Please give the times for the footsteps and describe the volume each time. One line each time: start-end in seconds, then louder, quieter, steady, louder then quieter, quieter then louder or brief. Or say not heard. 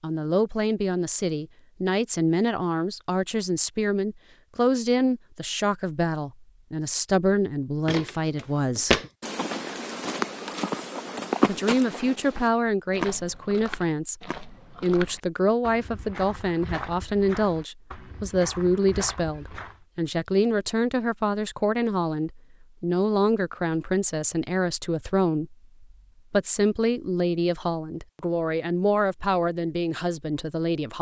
7.8-19.8 quieter.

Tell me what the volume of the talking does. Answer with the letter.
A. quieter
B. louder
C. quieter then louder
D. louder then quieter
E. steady
E.